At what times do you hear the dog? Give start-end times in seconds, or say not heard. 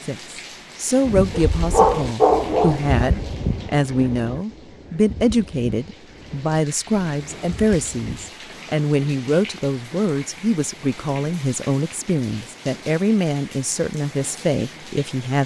1.3-3.0.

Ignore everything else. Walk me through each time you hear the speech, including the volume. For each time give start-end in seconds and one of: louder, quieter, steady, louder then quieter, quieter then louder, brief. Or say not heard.
0.1-15.4 steady.